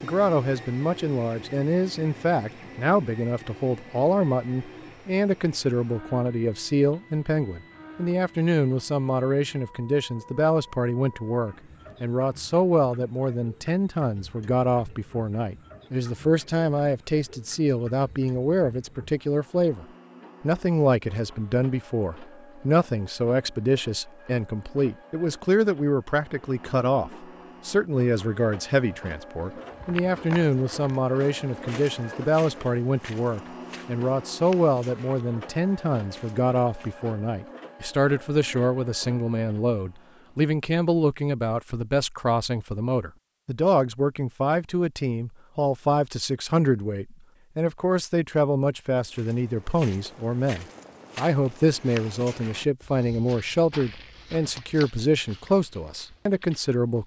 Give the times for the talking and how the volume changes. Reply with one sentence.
The talking can be heard from 0.0 to 57.0 s, at a steady volume.